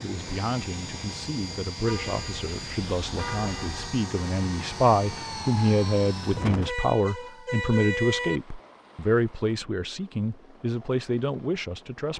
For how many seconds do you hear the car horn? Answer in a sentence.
You can hear the car horn for 4 seconds altogether.